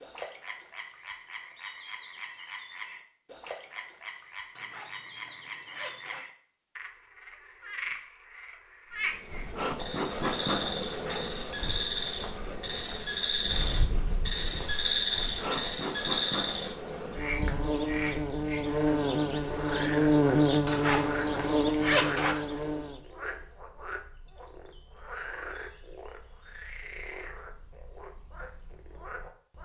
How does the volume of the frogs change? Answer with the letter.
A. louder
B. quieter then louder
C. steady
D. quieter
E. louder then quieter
E.